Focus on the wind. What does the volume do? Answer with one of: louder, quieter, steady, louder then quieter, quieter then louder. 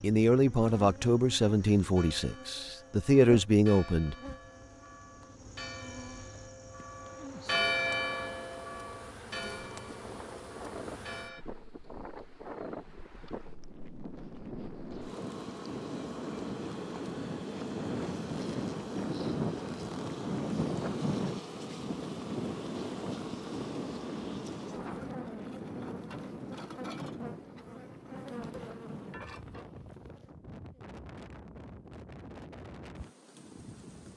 louder then quieter.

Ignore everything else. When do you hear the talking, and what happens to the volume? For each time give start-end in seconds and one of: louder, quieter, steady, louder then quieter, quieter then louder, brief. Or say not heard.
0.0-4.2 quieter then louder.